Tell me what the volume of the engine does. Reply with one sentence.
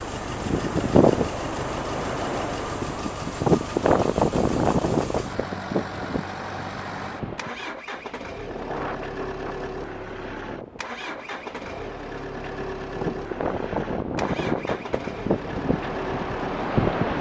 The volume of the engine stays about the same.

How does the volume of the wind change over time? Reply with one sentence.
The loudness of the wind goes down, then up.